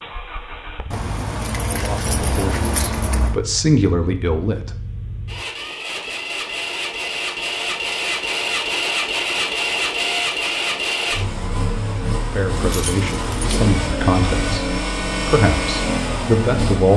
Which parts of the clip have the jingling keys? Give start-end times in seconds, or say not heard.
0.9-3.4, 12.6-13.6.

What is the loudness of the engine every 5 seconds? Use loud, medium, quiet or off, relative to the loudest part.
quiet, loud, loud, loud.